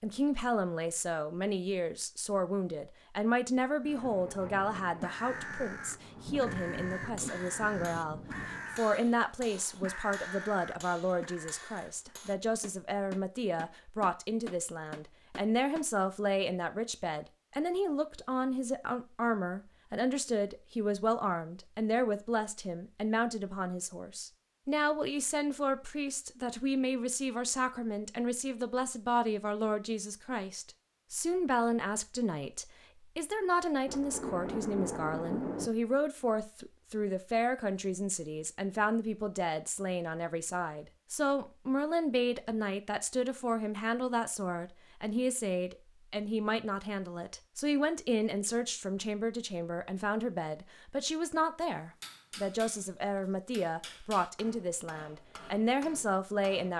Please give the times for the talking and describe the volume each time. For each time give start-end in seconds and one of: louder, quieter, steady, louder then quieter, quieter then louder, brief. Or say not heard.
0.0-56.7 steady.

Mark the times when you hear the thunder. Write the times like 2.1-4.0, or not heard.
3.9-8.8, 33.9-35.7.